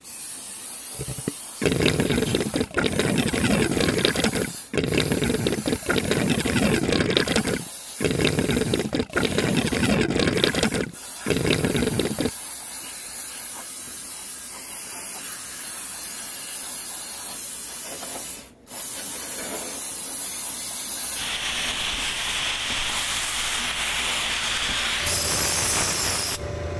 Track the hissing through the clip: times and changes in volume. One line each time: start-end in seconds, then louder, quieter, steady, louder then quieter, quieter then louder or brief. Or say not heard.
0.0-26.7 louder.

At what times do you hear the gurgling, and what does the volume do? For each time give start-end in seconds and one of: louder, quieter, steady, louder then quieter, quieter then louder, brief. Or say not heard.
0.9-12.3 steady.